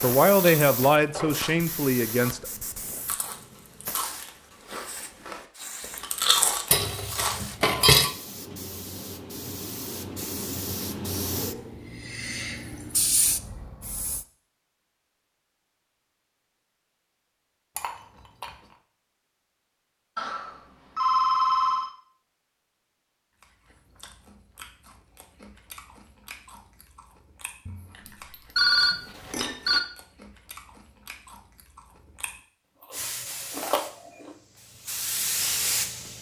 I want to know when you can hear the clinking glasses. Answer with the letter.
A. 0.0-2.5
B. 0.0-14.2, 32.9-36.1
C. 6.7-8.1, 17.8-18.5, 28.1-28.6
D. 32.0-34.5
C.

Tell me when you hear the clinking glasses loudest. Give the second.
8 s.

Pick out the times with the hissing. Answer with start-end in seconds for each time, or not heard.
0.0-14.2, 32.9-36.1.